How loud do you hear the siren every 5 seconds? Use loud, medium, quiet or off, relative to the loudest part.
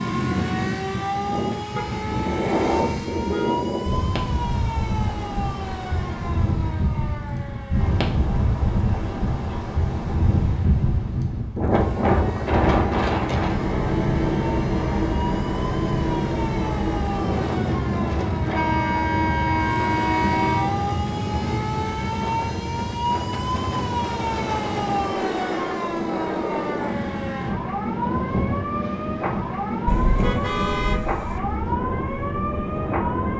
loud, medium, medium, medium, loud, loud, loud.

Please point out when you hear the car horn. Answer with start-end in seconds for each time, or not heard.
1.8-3.5, 18.4-20.7, 29.9-31.4.